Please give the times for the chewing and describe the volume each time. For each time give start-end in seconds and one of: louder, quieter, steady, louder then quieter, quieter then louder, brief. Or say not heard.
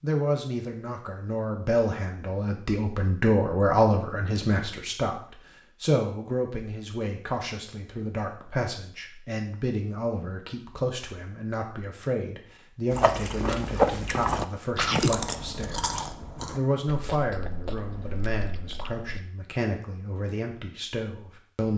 12.9-19.2 quieter.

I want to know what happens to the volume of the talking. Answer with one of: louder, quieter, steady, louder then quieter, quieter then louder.
quieter.